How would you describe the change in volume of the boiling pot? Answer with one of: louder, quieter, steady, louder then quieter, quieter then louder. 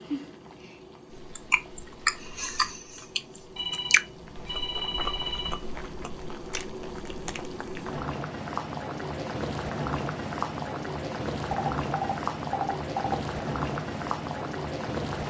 louder.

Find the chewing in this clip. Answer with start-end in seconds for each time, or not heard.
1.1-8.0.